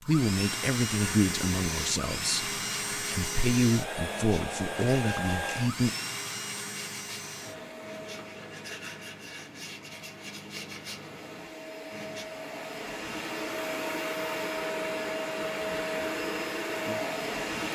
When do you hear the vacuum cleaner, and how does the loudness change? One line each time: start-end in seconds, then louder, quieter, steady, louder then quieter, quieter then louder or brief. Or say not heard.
0.0-17.7 quieter then louder.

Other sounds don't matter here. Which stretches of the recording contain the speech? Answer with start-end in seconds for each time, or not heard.
0.1-6.0.